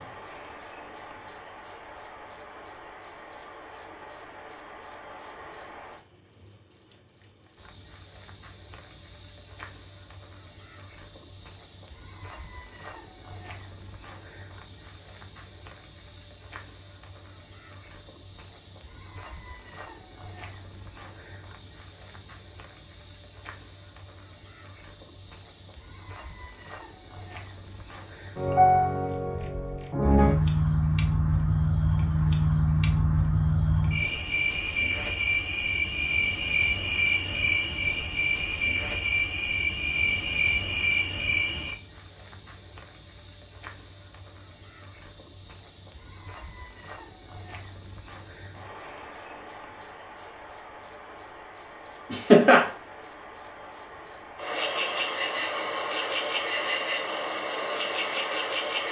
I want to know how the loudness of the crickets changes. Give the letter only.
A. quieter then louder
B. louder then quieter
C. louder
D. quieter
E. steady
E.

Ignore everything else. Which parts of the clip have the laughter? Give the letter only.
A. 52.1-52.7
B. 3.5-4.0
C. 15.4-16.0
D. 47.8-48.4
A.